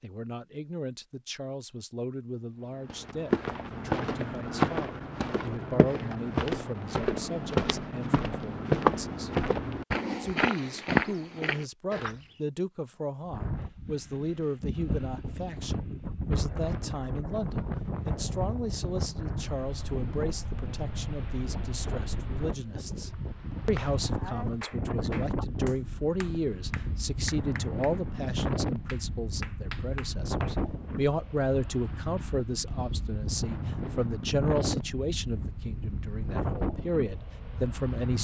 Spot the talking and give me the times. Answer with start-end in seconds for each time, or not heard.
0.0-9.3, 10.2-38.1.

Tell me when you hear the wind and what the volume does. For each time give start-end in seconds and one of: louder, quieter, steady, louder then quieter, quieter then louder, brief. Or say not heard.
13.2-38.1 steady.